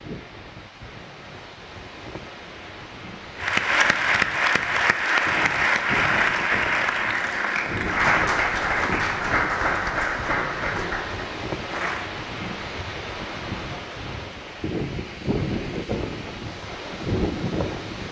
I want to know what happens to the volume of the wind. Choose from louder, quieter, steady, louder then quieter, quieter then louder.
louder.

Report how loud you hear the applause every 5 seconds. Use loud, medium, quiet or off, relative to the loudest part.
loud, loud, medium, off.